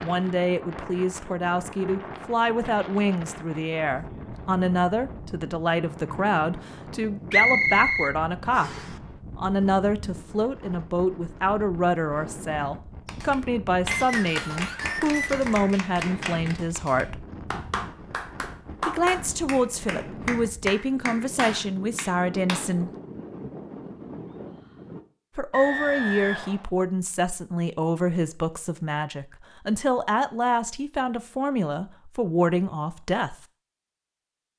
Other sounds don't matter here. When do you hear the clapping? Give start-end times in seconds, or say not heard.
13.1-22.6.